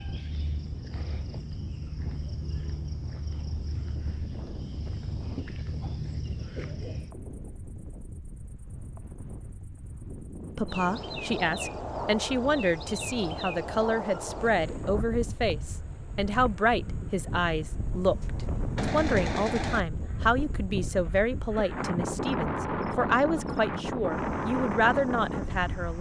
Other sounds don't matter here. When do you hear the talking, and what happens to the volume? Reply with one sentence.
You can hear the talking from 10.6 to 25.9 s, at a steady volume.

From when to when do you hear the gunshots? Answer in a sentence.
You can hear the gunshots from 17.9 to 19.9 s.